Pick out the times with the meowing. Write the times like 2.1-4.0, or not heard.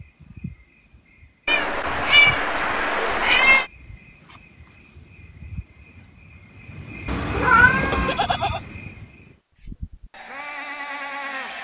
1.4-3.6, 7.0-8.2.